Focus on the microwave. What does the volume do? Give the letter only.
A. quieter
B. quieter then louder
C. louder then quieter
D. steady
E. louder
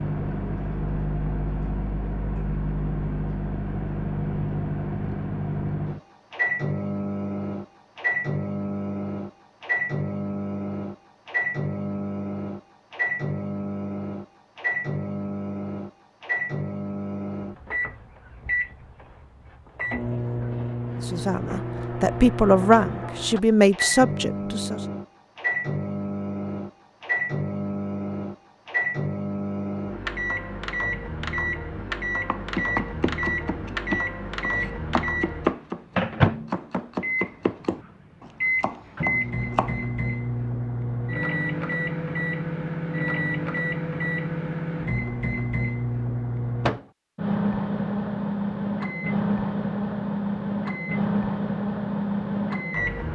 D.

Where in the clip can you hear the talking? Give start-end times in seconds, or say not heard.
21.1-24.8.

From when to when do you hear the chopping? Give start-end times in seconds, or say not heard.
32.2-39.8.